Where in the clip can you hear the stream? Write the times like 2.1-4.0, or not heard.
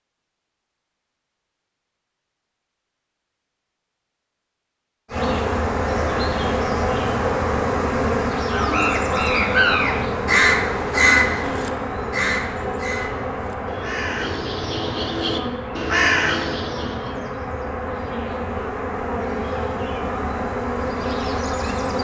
not heard.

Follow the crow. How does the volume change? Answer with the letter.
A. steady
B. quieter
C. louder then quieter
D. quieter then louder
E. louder
D.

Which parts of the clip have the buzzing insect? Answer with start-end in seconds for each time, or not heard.
5.1-21.9.